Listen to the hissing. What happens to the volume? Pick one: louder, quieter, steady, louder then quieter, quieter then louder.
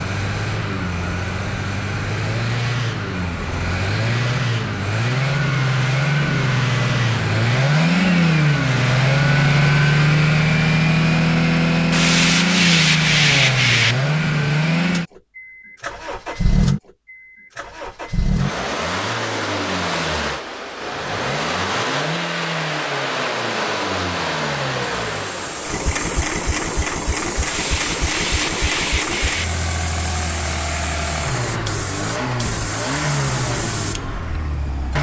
steady.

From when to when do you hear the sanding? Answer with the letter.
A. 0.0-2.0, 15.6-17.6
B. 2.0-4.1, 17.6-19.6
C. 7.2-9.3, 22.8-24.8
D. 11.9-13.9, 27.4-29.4
D.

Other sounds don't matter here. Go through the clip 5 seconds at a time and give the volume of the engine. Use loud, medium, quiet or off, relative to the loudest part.
medium, loud, loud, medium, medium, medium, medium.